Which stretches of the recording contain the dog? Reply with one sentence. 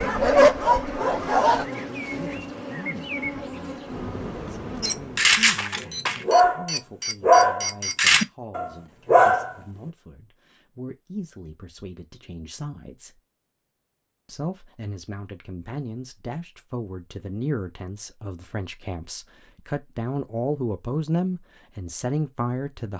You can hear the dog from 0.0 to 1.6 s and from 4.8 to 9.6 s.